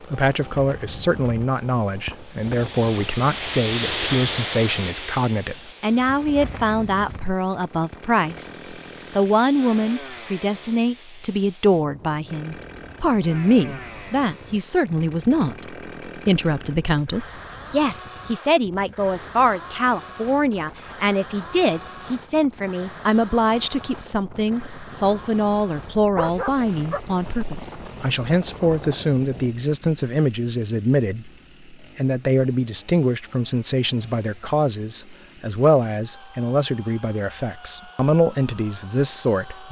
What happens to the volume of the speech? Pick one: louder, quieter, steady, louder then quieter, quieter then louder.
steady.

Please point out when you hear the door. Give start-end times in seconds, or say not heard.
not heard.